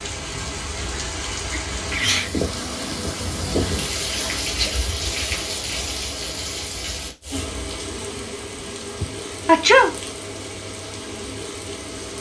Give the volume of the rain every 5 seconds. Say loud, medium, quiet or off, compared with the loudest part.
loud, loud, medium.